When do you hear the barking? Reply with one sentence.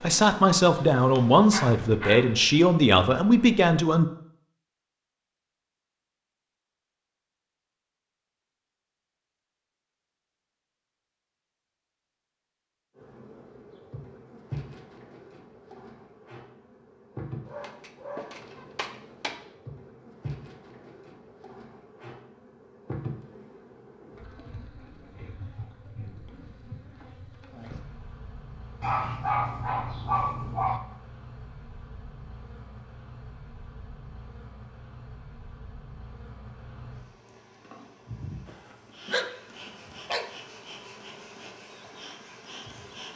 The barking can be heard from 1.5 to 2.4 s, from 17.4 to 19.4 s, from 28.8 to 30.8 s and from 38.5 to 40.2 s.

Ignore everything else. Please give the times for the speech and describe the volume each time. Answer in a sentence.
The speech can be heard from 0.0 to 4.0 s, at a steady volume.